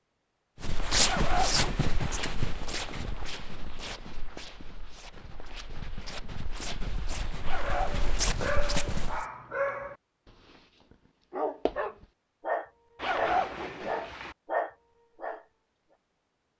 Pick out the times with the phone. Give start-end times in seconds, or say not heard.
not heard.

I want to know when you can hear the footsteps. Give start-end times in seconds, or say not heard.
0.6-9.2.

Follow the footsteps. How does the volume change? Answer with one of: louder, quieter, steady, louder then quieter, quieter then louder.
quieter then louder.